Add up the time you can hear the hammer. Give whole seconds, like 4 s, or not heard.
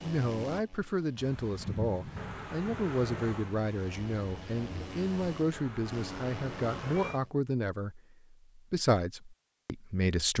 not heard.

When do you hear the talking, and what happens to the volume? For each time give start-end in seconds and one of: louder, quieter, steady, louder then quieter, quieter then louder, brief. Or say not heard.
0.0-10.3 steady.